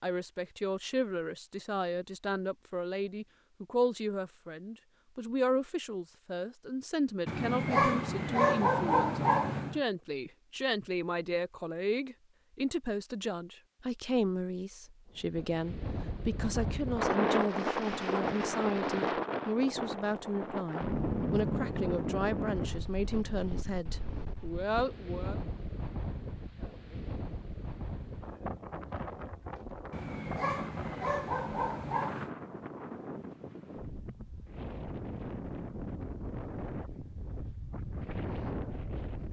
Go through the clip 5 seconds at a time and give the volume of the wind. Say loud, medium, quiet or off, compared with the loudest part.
off, off, off, loud, loud, medium, medium, medium.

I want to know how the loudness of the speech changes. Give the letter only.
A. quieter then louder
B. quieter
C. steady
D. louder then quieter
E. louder
C.